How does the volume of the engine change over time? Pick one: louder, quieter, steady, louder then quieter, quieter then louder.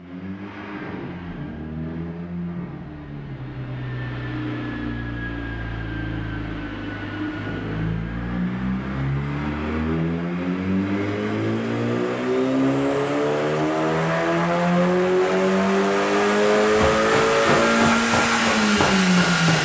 louder.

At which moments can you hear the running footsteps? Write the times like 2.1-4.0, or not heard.
16.6-19.5.